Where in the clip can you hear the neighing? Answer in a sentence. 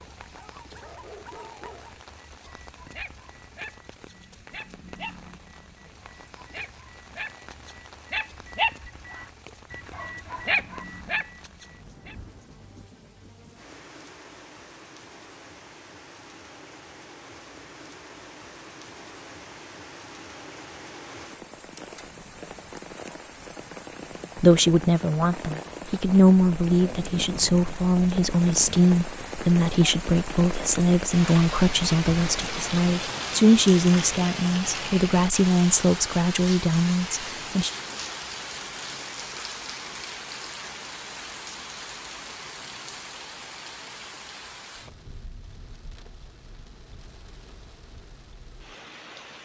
The neighing can't be heard in this clip.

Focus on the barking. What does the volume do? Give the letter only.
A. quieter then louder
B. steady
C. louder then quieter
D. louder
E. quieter
D.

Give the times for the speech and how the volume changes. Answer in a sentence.
The speech can be heard from 24.4 to 37.7 s, at a steady volume.